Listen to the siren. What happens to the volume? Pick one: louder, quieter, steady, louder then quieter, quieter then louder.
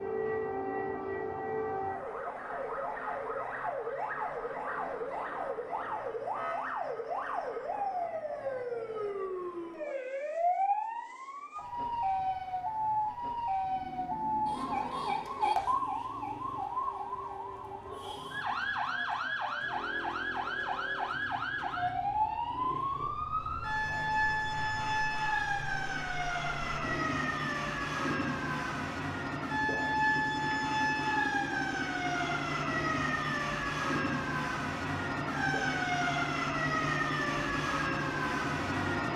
steady.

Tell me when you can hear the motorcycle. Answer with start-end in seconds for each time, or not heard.
13.6-39.1.